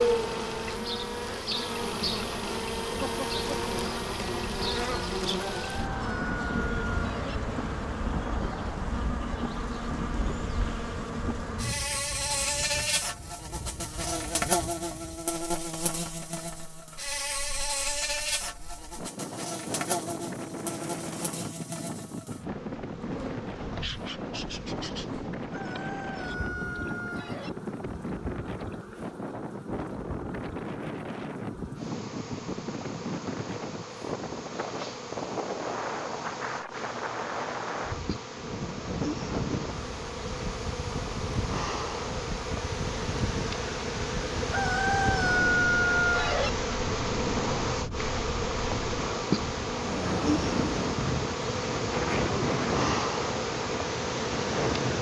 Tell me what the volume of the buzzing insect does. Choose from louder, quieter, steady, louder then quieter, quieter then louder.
quieter then louder.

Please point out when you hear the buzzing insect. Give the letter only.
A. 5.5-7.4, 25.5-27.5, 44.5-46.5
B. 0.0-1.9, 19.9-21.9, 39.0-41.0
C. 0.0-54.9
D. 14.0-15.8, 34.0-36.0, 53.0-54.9
C.